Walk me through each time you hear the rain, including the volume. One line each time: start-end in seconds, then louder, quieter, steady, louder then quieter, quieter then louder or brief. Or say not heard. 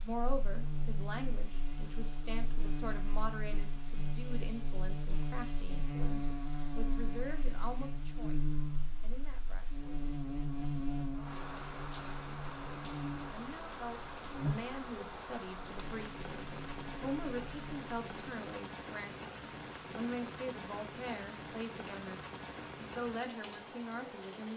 0.0-24.5 louder.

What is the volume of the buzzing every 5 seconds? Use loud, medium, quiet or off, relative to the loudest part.
loud, loud, loud, medium, off.